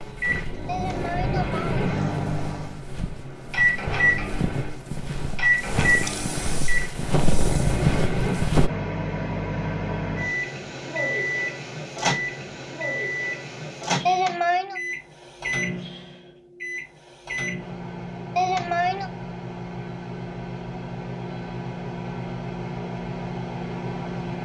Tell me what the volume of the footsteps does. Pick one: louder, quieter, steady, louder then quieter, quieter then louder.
louder.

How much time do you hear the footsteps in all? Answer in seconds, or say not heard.
9 s.